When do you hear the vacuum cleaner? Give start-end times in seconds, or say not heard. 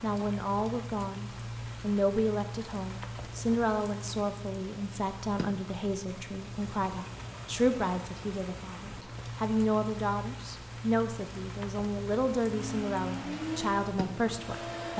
12.4-14.9.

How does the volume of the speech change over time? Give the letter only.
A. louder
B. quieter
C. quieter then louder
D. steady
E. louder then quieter
D.